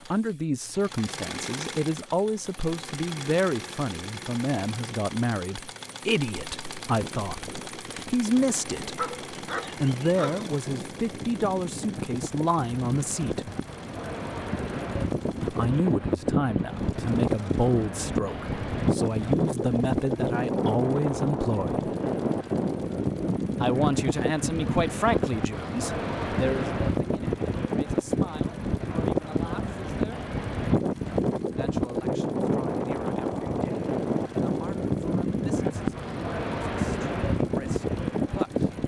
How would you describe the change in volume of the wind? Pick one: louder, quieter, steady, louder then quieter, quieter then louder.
louder.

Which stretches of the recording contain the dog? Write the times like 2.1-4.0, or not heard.
8.9-10.4.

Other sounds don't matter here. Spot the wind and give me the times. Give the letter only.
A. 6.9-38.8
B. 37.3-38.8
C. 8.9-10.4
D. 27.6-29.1
A.